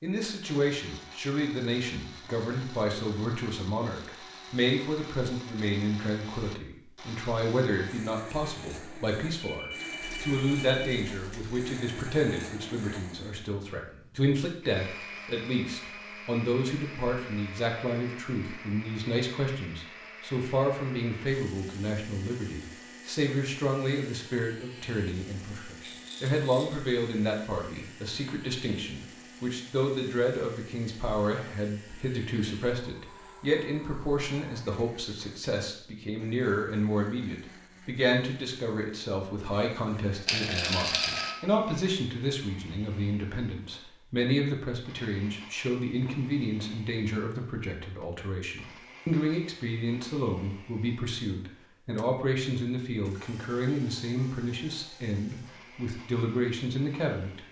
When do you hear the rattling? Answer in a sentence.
The rattling can be heard from 10.0 to 11.8 s, from 25.8 to 26.8 s and from 40.2 to 41.4 s.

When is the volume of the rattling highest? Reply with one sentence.
The loudest moment of the rattling is at 41 seconds.